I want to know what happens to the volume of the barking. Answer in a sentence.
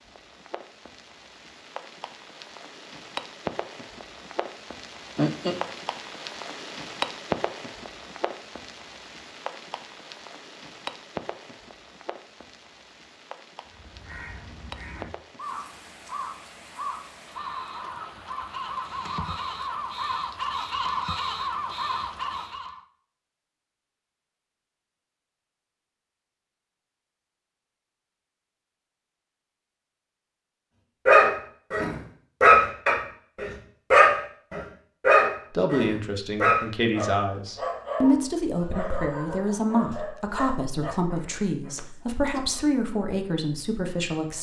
The volume of the barking goes down.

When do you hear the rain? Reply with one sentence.
You can hear the rain from 0.0 to 22.6 s.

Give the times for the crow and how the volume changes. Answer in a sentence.
You can hear the crow from 13.7 to 22.8 s, getting louder.